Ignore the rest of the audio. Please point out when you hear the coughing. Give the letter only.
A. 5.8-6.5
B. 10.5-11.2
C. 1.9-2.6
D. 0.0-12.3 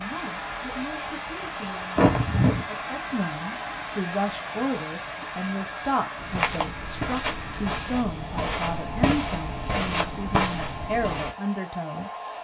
C.